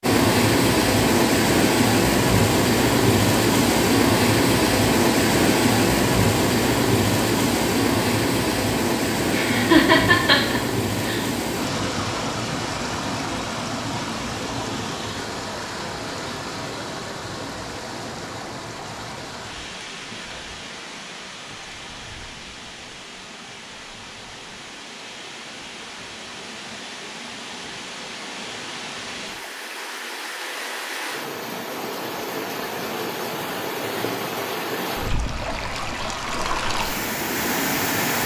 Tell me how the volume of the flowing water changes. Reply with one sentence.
The loudness of the flowing water goes down, then up.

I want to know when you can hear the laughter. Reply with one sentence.
The laughter can be heard from 9.3 to 11.2 s.